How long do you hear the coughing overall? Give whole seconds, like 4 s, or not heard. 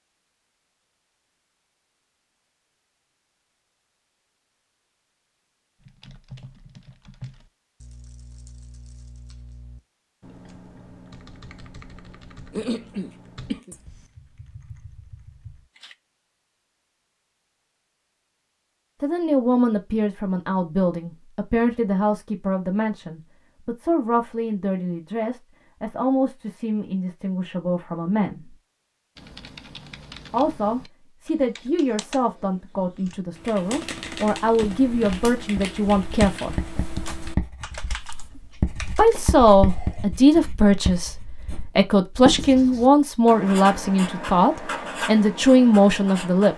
2 s.